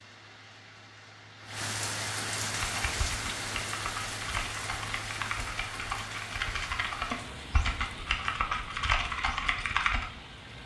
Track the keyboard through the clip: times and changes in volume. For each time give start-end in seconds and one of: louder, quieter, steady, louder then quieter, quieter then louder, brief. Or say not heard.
2.5-10.1 louder.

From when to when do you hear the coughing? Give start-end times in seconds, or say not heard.
not heard.